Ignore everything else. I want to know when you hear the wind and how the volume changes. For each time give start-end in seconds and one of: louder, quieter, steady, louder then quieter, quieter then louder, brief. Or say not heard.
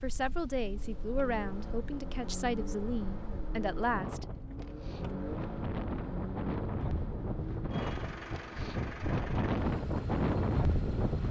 0.0-11.2 louder.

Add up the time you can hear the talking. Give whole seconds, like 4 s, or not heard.
4 s.